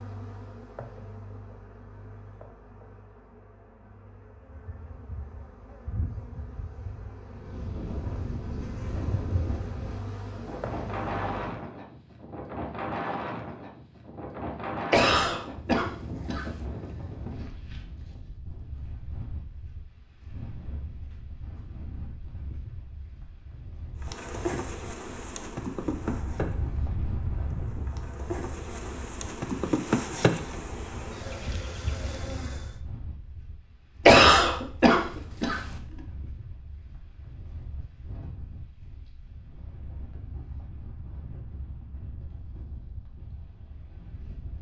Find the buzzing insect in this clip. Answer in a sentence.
The buzzing insect can be heard from 0.0 to 11.6 s and from 24.0 to 32.7 s.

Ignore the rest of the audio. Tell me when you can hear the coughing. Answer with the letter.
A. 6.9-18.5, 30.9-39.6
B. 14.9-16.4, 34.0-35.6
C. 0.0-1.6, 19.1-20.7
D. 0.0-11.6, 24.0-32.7
B.